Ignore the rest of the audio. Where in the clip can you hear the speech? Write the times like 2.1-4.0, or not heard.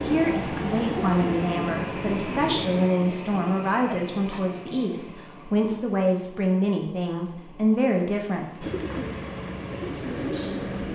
0.0-8.7.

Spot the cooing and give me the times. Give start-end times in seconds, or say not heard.
0.0-2.9, 8.6-10.9.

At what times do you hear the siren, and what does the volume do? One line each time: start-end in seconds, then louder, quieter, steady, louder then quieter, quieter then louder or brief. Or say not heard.
not heard.